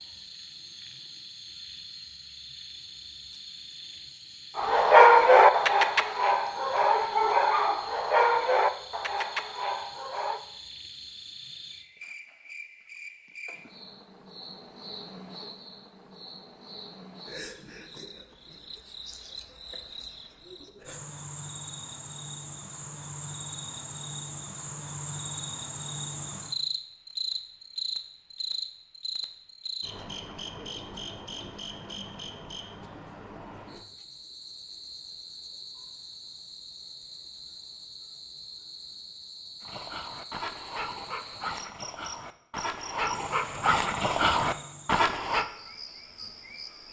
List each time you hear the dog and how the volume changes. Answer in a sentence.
The dog can be heard from 4.5 to 10.4 s, getting quieter; and from 39.6 to 45.5 s, getting louder.